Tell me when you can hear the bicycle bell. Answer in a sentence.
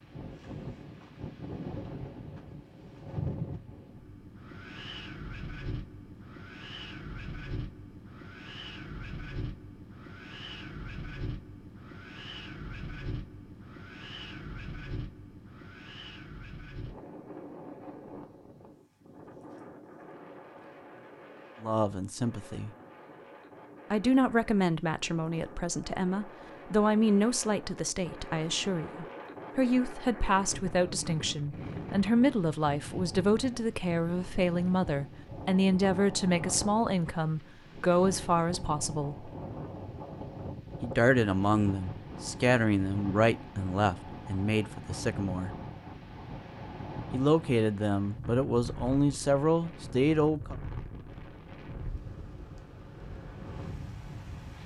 You can't hear the bicycle bell here.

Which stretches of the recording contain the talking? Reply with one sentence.
You can hear the talking from 21.6 to 22.7 s, from 23.9 to 39.3 s, from 40.8 to 45.5 s and from 47.1 to 50.5 s.